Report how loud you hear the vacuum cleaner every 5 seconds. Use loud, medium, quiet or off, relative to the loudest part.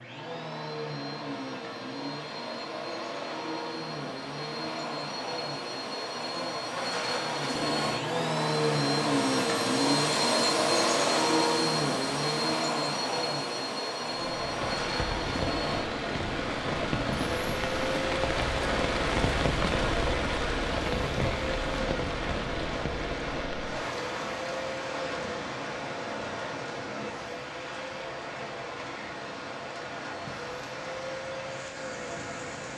medium, loud, loud, medium, medium, quiet, quiet.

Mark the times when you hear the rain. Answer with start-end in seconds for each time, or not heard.
14.1-32.7.